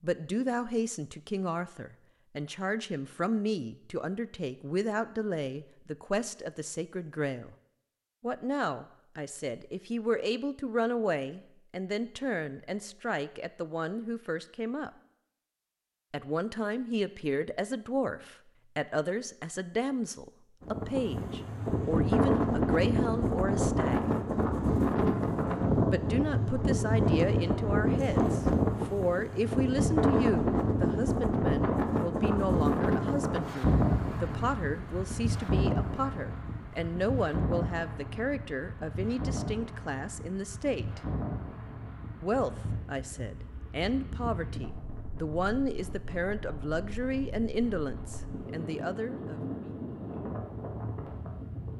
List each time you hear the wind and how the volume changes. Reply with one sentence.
The wind can be heard from 20.6 to 51.7 s, getting quieter.